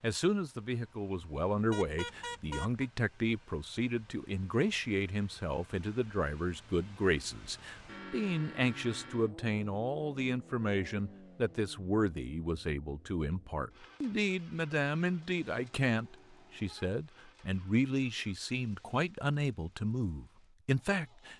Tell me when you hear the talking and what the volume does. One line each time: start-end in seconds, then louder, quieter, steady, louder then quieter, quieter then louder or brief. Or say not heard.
0.0-21.3 steady.